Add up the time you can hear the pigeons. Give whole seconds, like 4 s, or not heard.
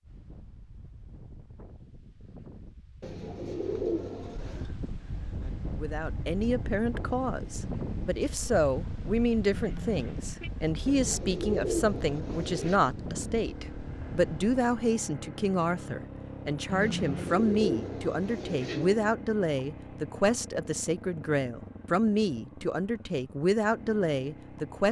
6 s.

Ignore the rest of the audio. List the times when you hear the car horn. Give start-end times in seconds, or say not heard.
9.6-10.5, 16.6-17.4.